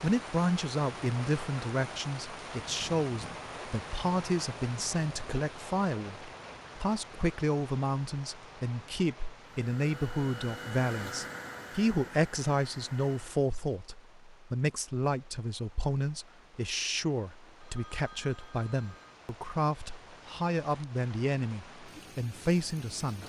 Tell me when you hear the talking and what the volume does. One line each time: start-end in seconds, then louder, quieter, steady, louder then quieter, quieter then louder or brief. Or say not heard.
0.0-23.2 steady.